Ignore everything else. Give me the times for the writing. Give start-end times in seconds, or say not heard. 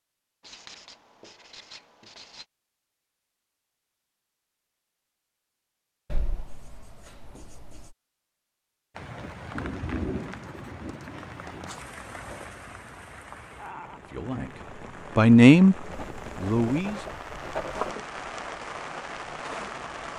0.4-2.5, 6.1-8.0, 10.2-11.8, 15.9-17.9.